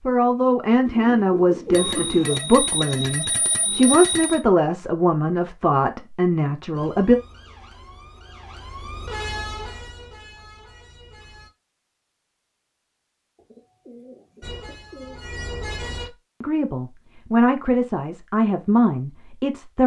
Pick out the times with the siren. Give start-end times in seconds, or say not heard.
6.7-11.5, 14.4-16.1.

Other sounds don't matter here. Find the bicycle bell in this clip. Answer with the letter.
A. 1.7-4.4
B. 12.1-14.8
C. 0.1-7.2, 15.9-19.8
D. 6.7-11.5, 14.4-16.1
A.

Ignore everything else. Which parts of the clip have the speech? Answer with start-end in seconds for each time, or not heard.
0.1-7.2, 15.9-19.8.